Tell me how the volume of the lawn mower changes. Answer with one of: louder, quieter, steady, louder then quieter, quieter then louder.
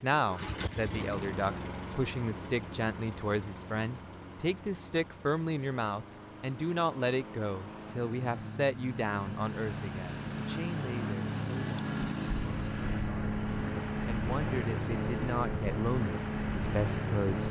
quieter then louder.